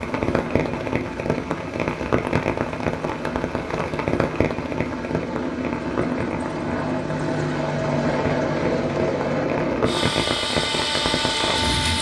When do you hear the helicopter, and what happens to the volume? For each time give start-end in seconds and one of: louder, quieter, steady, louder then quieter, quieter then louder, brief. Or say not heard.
0.0-11.9 louder.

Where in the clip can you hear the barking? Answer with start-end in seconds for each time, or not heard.
not heard.